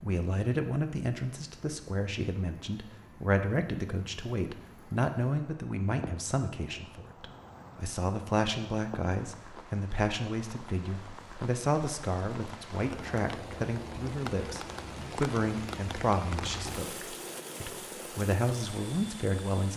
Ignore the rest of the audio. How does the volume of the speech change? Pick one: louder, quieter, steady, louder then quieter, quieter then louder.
steady.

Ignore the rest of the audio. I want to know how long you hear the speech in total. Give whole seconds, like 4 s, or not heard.
20 s.